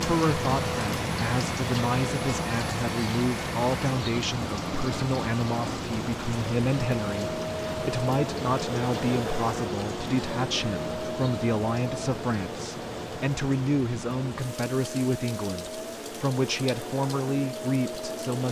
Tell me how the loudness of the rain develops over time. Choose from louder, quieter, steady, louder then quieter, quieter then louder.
quieter.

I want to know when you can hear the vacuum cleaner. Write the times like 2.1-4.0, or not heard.
0.0-18.4.